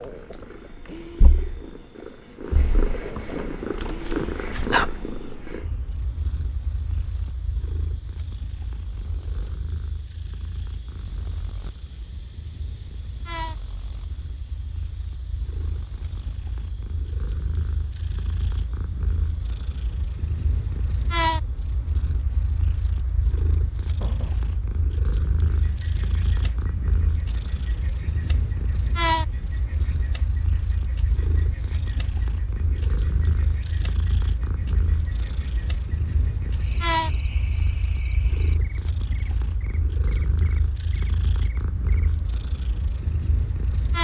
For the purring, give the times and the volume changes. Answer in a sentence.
You can hear the purring from 0.0 to 43.9 s, getting quieter then louder.